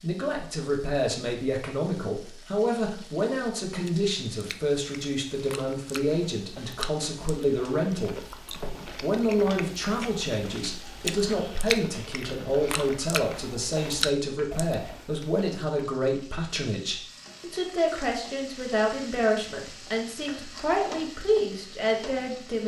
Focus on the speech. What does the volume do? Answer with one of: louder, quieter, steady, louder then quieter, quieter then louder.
steady.